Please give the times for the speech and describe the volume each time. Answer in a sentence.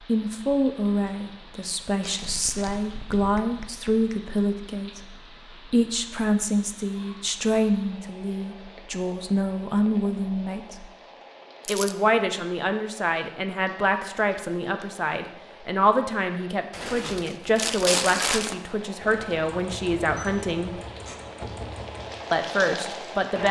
You can hear the speech from 0.1 to 10.9 s, at a steady volume; from 11.7 to 20.8 s, at a steady volume; and briefly from 22.3 to 23.4 s.